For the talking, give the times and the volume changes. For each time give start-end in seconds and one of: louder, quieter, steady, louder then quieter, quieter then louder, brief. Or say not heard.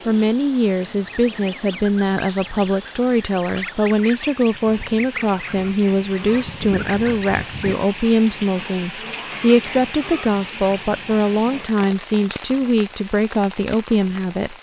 0.1-14.5 steady.